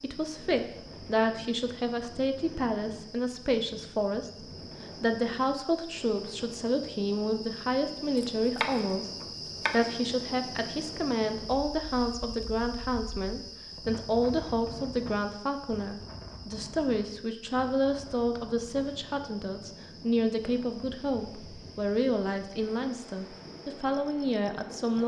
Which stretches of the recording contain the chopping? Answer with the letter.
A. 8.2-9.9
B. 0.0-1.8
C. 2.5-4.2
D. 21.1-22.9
A.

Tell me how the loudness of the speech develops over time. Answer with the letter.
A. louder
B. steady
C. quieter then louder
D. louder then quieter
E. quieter
B.